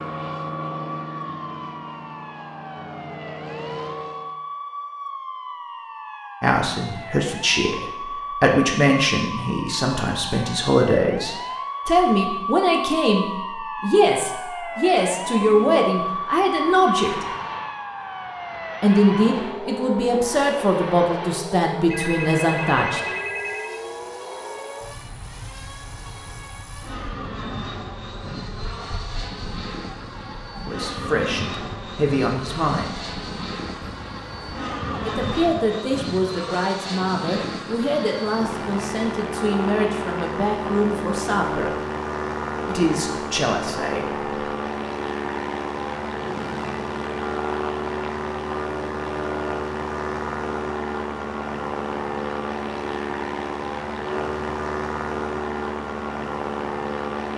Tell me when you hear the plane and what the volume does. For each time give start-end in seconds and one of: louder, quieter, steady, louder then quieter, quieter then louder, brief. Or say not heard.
0.0-4.3 quieter then louder
14.7-57.3 louder.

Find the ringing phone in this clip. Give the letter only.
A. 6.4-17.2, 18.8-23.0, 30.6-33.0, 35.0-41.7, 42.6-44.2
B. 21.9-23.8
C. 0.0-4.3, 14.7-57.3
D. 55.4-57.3
B.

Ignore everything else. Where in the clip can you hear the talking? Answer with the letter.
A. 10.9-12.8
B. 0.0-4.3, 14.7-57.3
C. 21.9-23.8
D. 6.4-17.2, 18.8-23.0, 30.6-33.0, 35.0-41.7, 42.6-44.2
D.